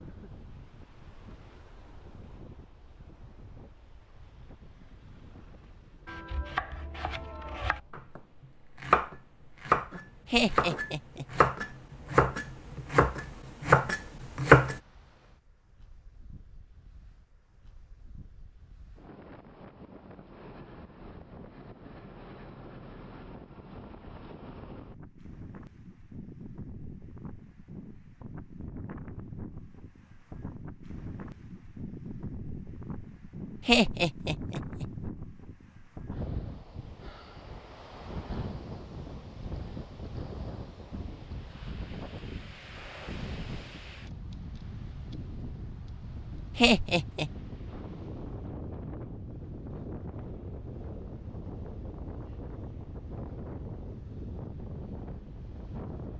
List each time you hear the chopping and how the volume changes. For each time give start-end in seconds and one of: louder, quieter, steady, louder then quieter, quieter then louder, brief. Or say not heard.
6.0-14.8 louder.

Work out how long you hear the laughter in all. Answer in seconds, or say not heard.
3 s.